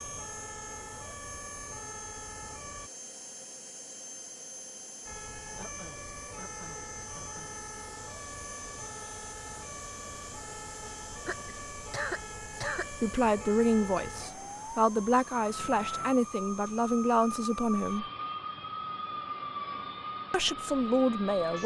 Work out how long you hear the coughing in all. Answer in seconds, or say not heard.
4 s.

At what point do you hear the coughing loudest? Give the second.
12 s.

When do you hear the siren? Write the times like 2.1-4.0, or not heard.
0.0-2.9, 5.0-21.6.